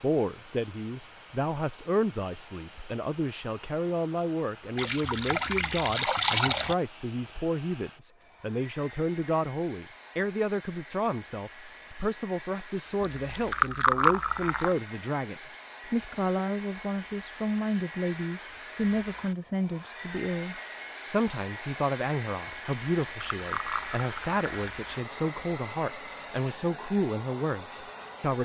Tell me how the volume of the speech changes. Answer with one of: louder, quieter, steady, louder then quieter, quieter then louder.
steady.